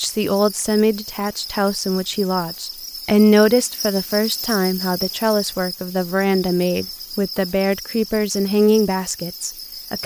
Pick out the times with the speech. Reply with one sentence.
You can hear the speech from 0.0 to 10.0 s.